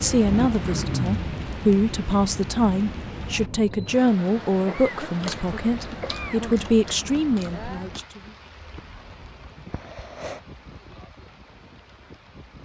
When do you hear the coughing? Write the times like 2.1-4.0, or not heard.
0.3-1.2, 4.7-6.6, 9.7-10.4.